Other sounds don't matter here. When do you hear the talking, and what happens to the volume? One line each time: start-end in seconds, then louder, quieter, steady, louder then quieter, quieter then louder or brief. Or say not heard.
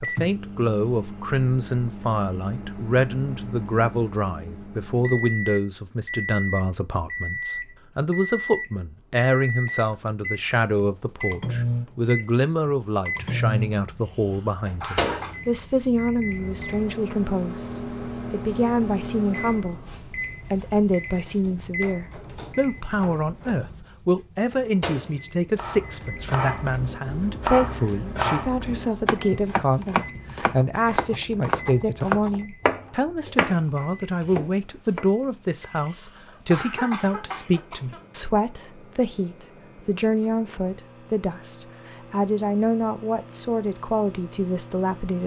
0.0-45.2 steady.